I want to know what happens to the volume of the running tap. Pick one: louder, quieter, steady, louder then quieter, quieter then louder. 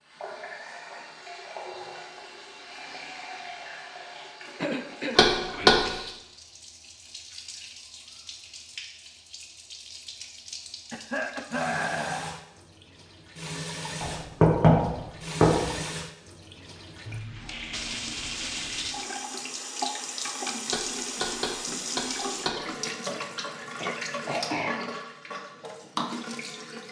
louder.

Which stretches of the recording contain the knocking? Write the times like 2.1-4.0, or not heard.
5.2-5.8, 14.0-15.8, 20.7-22.6.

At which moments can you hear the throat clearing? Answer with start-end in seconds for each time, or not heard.
4.5-5.8, 10.9-12.4, 23.8-24.9.